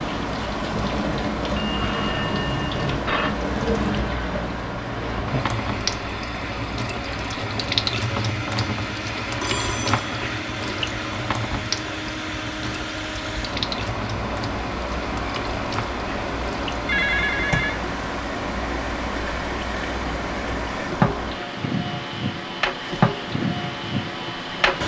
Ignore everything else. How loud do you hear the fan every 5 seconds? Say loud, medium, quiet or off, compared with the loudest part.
loud, medium, loud, loud, loud.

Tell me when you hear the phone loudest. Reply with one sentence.
The volume of the phone peaks at 17 seconds.